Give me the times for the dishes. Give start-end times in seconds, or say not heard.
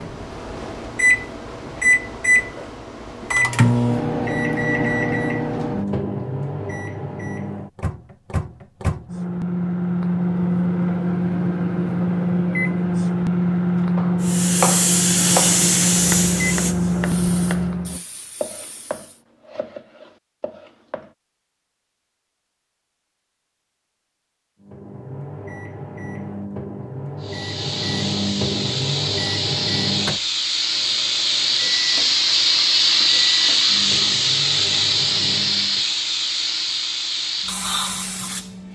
not heard.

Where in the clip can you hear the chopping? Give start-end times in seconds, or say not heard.
13.9-21.1.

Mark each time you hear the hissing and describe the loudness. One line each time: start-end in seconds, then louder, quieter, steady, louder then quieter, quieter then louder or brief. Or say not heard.
14.2-19.2 quieter
27.2-38.6 louder then quieter.